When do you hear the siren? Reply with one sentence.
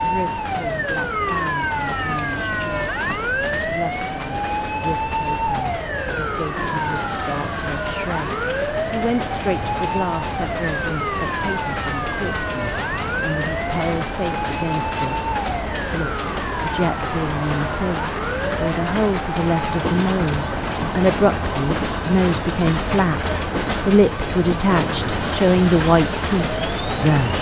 You can hear the siren from 0.0 to 27.3 s.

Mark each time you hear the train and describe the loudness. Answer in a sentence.
You can hear the train from 0.0 to 27.3 s, getting louder.